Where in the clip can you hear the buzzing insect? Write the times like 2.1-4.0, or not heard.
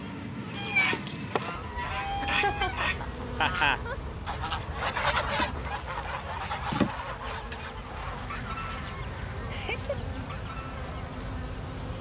0.0-11.9.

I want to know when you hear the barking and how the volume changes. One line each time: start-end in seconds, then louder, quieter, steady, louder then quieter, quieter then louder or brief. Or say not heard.
not heard.